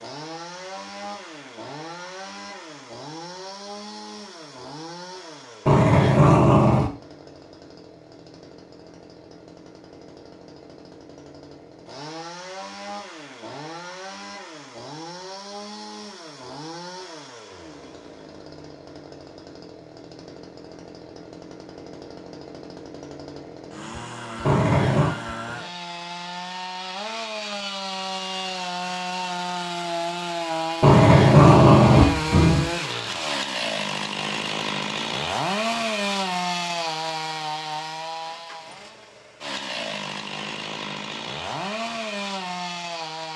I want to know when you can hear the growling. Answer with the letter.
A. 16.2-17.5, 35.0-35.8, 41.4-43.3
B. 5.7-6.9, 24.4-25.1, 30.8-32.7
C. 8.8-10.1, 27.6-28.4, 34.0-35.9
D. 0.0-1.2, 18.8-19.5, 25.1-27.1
B.